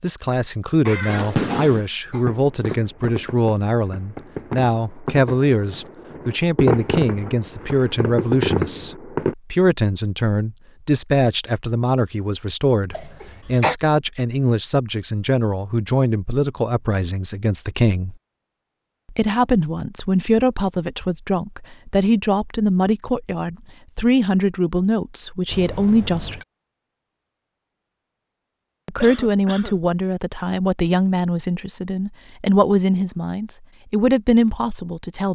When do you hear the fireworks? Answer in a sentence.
The fireworks can be heard from 1.1 to 9.3 s.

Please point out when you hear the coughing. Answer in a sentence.
The coughing can be heard from 0.8 to 2.8 s, from 12.9 to 13.8 s and from 29.0 to 29.8 s.